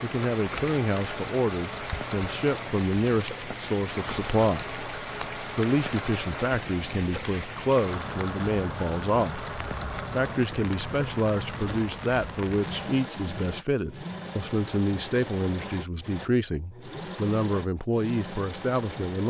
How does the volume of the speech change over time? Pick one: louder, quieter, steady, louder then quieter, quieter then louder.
steady.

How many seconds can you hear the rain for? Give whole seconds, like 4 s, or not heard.
13 s.